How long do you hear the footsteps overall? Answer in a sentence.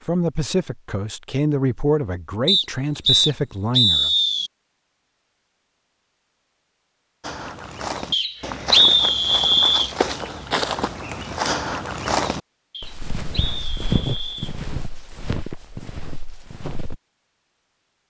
You can hear the footsteps for 10 seconds altogether.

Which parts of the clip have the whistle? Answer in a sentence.
The whistle can be heard from 2.5 to 4.5 s, from 8.1 to 9.9 s and from 12.7 to 14.6 s.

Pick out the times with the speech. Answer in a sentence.
You can hear the speech from 0.1 to 4.1 s.